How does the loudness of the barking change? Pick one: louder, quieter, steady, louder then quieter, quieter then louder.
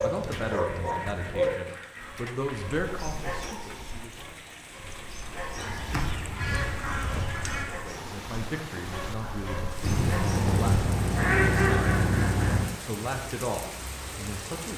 quieter.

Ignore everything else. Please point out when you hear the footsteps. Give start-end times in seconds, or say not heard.
not heard.